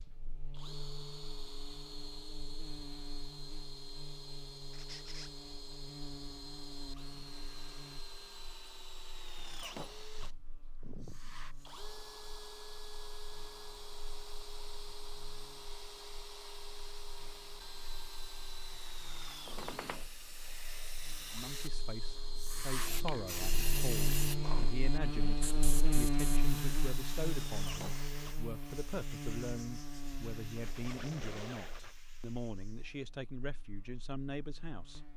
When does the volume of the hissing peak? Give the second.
24 s.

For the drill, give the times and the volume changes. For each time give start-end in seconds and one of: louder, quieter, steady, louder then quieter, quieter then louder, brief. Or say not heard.
0.0-28.4 steady.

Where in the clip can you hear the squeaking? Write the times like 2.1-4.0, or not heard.
4.7-5.3, 19.4-20.1, 30.6-32.0.